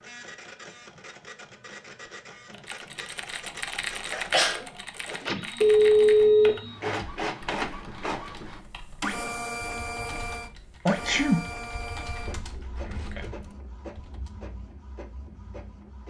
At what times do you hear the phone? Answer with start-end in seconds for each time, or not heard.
5.6-6.9.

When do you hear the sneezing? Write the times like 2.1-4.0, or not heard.
4.1-4.7, 10.8-11.4.